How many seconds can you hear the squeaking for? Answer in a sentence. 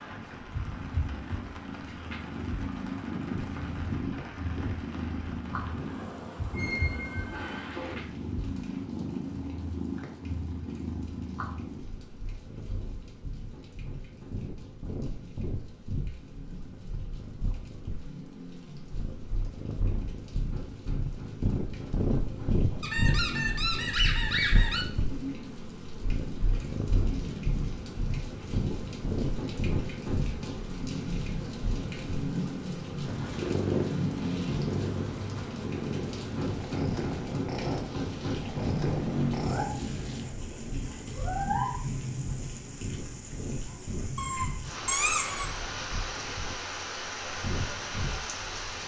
The squeaking can be heard for 5 seconds in total.